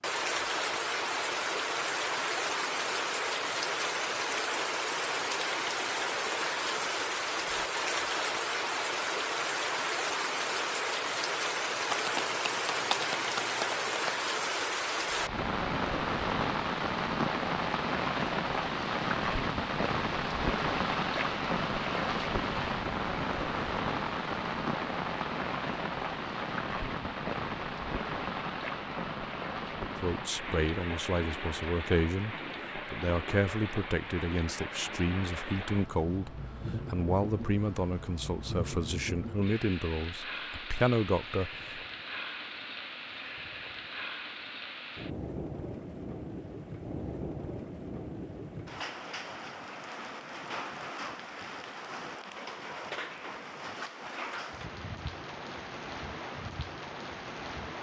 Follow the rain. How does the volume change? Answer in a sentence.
The volume of the rain goes down.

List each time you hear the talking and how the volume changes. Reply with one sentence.
You can hear the talking from 29.9 to 41.8 s, at a steady volume.